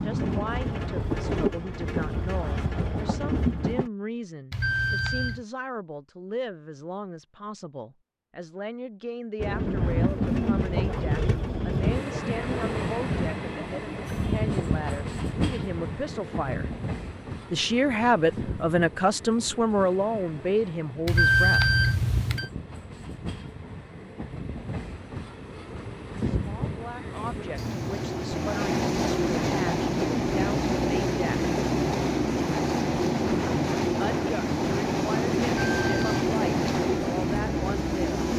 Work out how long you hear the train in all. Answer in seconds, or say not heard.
33 s.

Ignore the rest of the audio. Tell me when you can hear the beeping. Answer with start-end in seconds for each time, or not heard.
4.5-5.5, 21.1-22.5, 35.7-36.2.